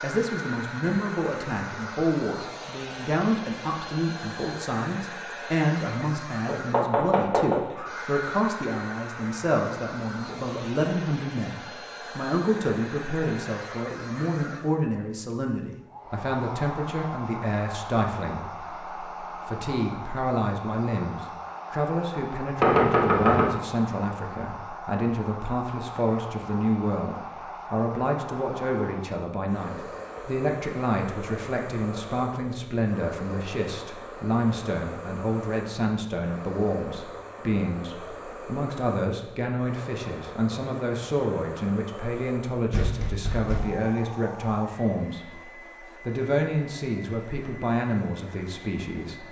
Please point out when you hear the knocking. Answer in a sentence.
The knocking can be heard from 6.5 to 7.9 s, from 22.6 to 23.5 s and from 42.7 to 43.8 s.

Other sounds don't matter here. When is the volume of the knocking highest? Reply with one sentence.
The loudest moment of the knocking is at 23 seconds.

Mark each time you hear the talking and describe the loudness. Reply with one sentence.
The talking can be heard from 0.0 to 49.2 s, at a steady volume.